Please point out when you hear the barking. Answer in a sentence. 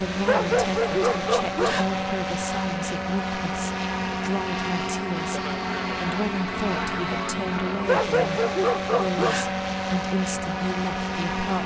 You can hear the barking from 0.2 to 1.9 s and from 7.8 to 9.6 s.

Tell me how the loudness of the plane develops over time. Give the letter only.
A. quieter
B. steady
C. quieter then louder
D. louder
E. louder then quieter
B.